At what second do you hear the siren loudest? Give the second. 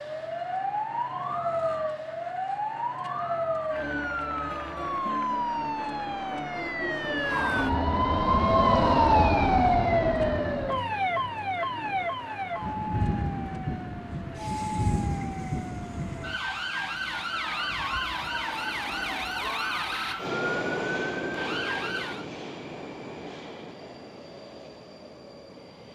9 s.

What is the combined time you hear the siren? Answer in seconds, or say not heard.
22 s.